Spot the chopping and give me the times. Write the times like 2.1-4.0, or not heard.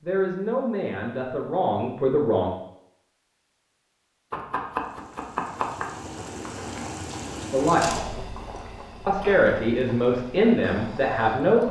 4.3-5.9.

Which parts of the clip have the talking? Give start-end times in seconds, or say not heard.
0.0-2.5, 7.5-8.0, 9.1-11.6.